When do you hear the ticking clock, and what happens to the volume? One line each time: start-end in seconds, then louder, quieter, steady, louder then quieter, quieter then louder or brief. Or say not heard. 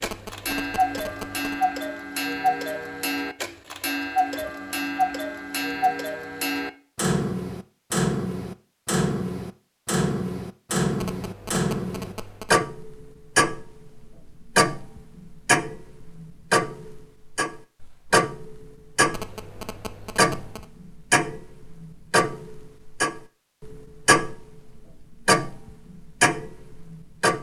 0.0-27.3 steady.